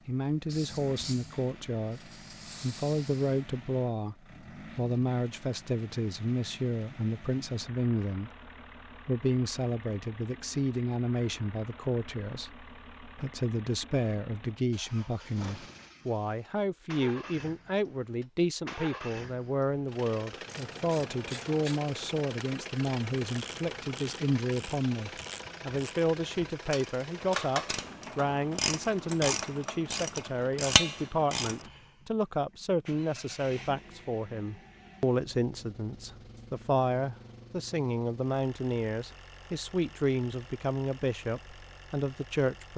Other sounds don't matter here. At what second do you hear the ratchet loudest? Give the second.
31 s.